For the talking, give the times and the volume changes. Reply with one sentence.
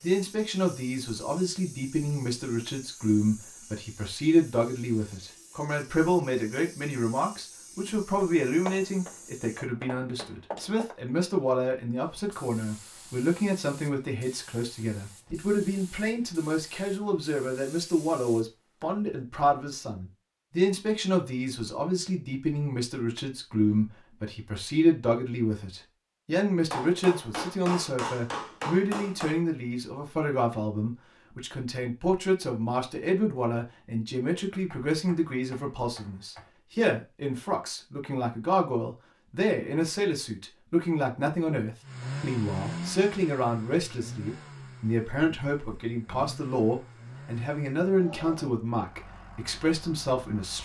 You can hear the talking from 0.0 to 50.6 s, at a steady volume.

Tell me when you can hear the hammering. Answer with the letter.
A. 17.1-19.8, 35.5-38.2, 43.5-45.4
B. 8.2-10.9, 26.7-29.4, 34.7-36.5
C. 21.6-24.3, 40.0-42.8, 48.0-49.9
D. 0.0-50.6
B.